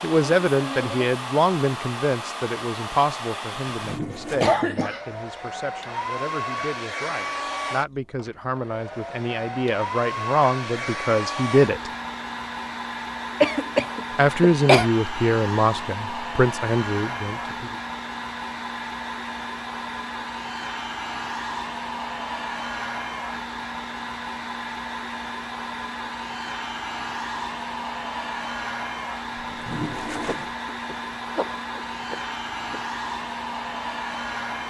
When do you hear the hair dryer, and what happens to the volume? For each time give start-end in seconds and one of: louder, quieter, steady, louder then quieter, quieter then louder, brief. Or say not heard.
0.0-34.6 steady.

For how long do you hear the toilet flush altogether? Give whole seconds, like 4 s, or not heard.
2 s.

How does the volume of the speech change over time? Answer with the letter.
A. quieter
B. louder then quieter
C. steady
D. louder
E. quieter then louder
E.